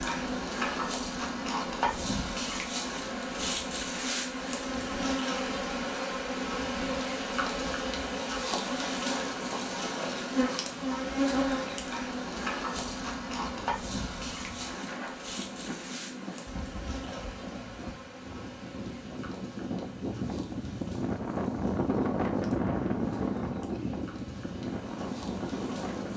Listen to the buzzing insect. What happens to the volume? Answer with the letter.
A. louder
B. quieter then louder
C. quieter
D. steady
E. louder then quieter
C.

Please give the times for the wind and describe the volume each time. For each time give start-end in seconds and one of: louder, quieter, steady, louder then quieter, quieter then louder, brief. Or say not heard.
0.0-26.1 louder.